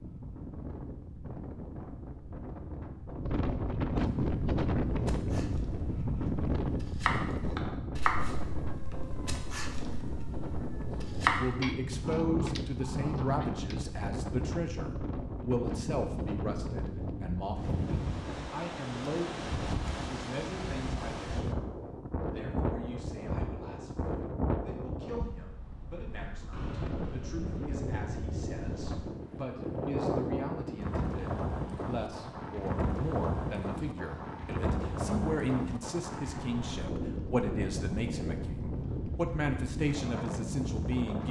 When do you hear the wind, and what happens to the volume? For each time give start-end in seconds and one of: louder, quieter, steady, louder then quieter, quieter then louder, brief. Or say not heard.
0.0-41.2 steady.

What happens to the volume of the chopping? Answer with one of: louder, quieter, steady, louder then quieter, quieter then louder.
louder then quieter.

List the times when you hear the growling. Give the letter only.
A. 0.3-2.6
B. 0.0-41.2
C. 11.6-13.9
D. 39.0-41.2
C.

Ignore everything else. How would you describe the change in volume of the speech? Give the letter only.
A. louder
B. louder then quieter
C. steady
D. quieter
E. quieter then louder
E.